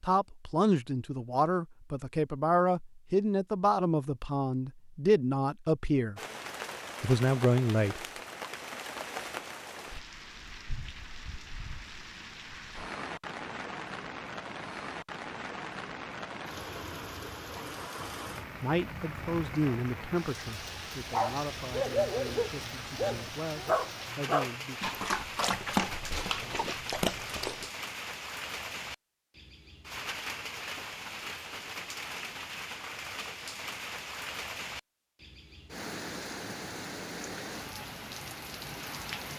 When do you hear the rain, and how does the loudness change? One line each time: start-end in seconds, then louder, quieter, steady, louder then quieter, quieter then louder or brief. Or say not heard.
6.2-39.3 steady.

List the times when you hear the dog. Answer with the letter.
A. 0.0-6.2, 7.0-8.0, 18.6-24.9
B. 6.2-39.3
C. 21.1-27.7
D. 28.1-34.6
C.